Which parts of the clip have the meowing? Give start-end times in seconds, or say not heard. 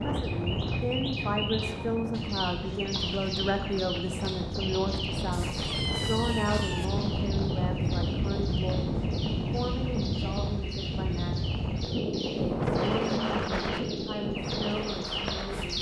5.3-6.8.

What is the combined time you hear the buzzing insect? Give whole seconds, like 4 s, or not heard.
not heard.